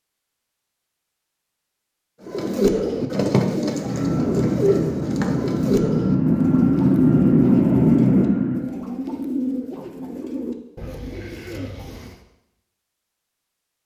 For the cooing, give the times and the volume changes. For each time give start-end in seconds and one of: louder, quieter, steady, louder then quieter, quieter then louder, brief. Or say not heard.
2.2-12.2 quieter.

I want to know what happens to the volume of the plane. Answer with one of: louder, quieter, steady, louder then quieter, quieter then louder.
louder.